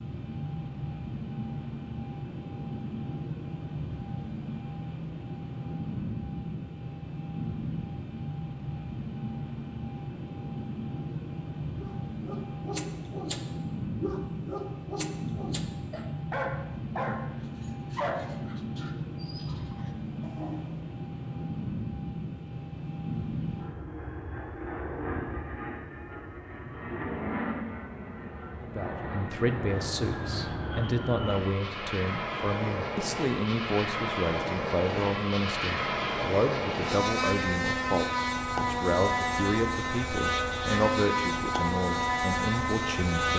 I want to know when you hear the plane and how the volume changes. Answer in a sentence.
The plane can be heard from 0.0 to 43.3 s, getting louder.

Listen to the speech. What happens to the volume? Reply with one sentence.
The loudness of the speech stays about the same.